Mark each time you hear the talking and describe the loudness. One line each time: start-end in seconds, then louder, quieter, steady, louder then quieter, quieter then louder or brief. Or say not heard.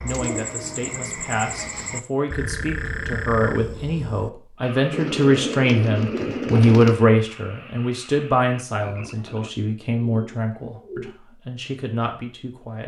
0.0-12.8 louder then quieter.